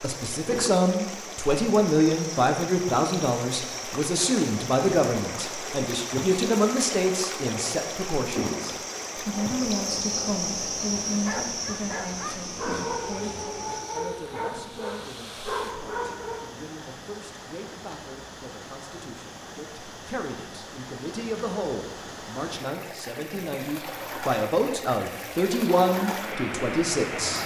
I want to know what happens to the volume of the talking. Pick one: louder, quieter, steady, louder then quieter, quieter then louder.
quieter then louder.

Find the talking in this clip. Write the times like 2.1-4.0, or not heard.
0.0-27.4.